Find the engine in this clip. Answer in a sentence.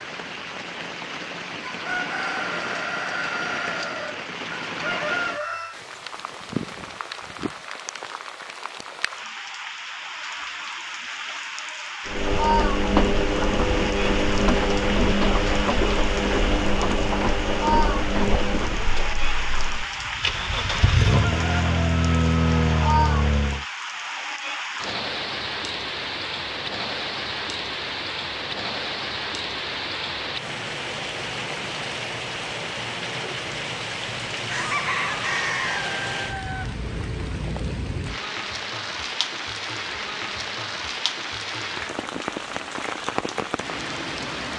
The engine can be heard from 12.1 to 23.6 s.